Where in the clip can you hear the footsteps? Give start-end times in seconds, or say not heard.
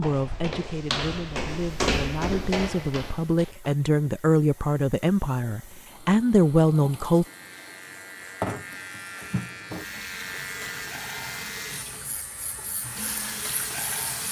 0.0-3.7.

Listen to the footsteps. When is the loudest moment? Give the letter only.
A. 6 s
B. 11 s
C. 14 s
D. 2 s
D.